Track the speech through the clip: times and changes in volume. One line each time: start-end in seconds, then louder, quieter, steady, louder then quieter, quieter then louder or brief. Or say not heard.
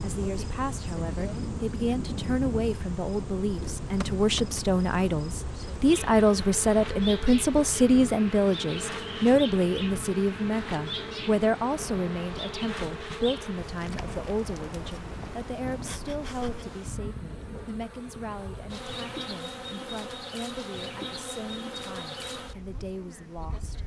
0.0-23.8 louder then quieter.